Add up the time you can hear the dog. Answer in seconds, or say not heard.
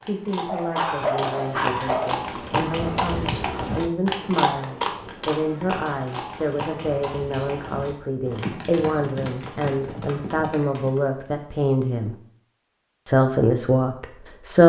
2 s.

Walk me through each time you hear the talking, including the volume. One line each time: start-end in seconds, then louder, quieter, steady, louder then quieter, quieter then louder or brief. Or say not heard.
0.0-12.2 louder
13.1-14.6 brief.